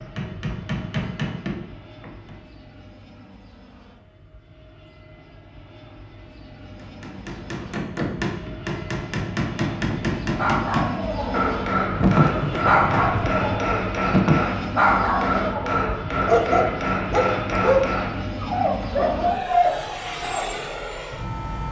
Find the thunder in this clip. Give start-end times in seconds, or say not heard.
11.9-13.4.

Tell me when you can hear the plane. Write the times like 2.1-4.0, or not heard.
0.0-21.6.